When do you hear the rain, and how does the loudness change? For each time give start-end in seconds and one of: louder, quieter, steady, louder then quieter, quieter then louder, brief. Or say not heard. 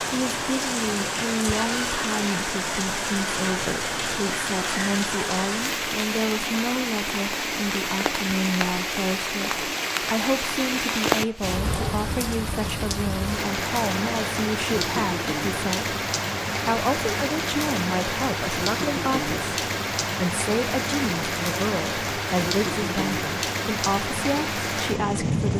0.0-25.5 steady.